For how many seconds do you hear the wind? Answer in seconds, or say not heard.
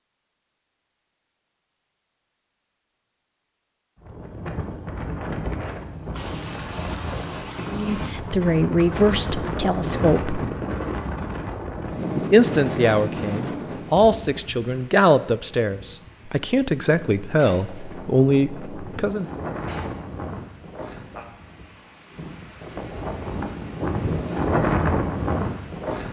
22 s.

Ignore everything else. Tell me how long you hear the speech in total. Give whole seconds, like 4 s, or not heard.
10 s.